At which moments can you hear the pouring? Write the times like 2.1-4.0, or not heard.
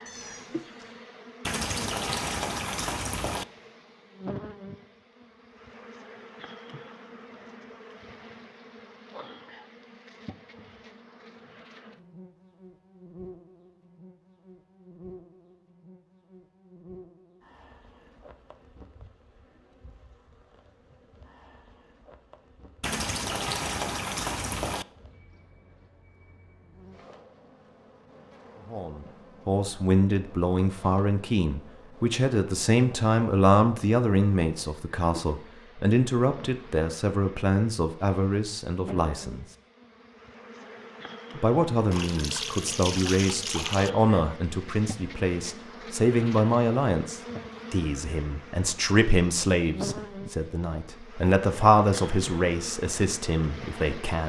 1.4-3.5, 22.8-24.9, 41.9-43.9.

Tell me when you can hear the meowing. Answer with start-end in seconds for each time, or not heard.
0.1-0.9.